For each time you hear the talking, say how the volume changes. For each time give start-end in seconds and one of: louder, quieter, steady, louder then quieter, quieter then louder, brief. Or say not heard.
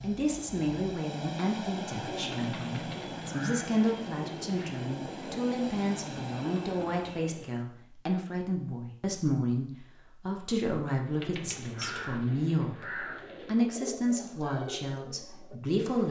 0.0-16.0 steady.